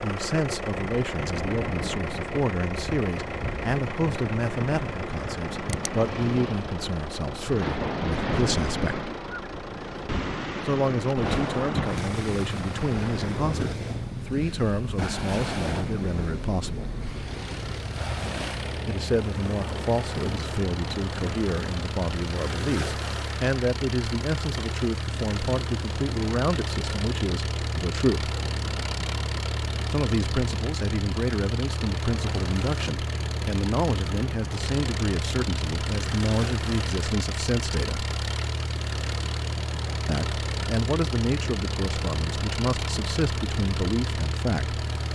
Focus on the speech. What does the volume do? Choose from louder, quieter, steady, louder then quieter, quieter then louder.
steady.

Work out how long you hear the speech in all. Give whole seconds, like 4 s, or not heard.
38 s.